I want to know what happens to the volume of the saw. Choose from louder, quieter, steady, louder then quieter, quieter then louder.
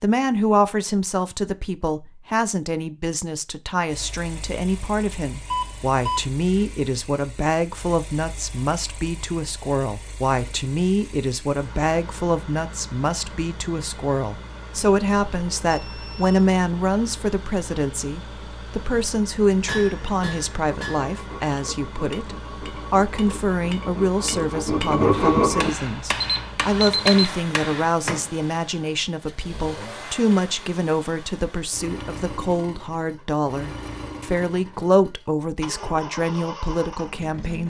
louder.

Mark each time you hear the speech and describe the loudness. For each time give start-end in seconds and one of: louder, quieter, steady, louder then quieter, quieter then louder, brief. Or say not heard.
0.0-37.6 steady.